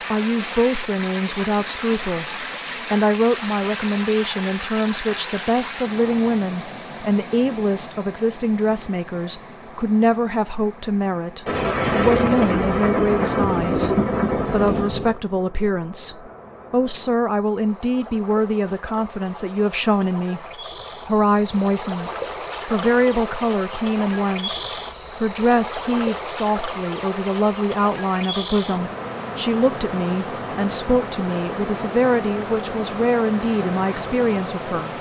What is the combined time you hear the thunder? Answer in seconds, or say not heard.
4 s.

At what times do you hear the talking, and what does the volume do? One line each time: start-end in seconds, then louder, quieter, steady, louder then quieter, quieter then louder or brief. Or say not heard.
0.1-34.9 steady.